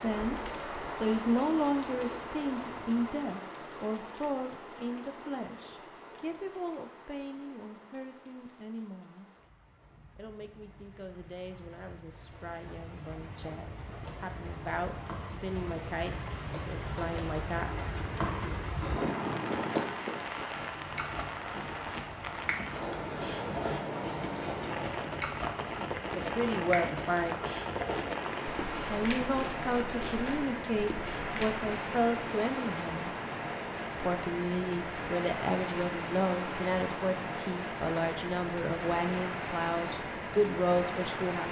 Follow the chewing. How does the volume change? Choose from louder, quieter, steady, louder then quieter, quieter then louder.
steady.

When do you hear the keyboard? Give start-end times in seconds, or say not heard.
14.0-19.9.